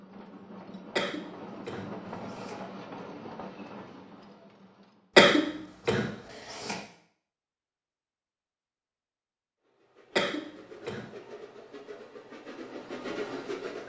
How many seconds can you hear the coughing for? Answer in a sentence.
The coughing can be heard for 4 seconds in total.